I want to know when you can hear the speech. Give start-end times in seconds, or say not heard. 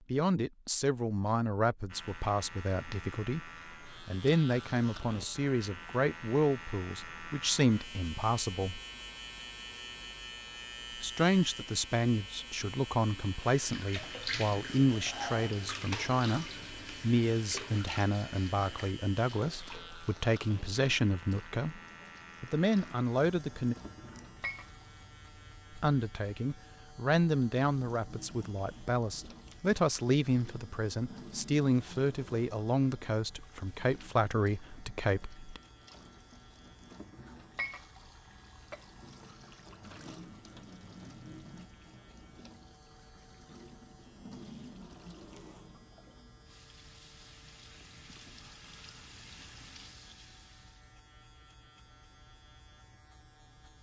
0.1-8.8, 11.0-21.8, 22.4-23.8, 25.8-35.6.